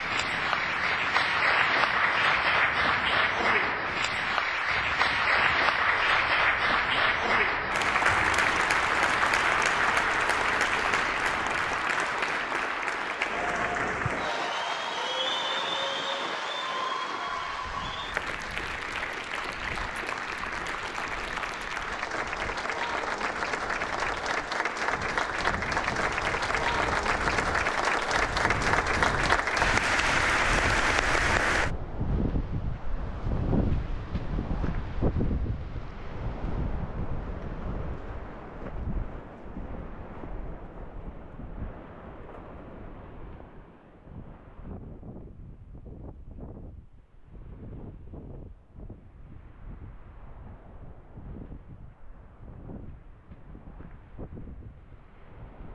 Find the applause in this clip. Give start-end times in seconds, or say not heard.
0.0-31.7.